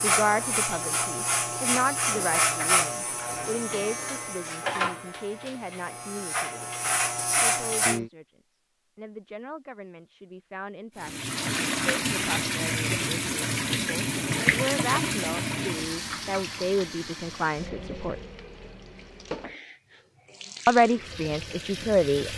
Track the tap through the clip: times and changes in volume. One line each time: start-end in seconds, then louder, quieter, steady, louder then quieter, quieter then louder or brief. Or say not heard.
10.9-22.3 quieter.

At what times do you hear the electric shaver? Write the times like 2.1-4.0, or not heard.
0.0-8.1.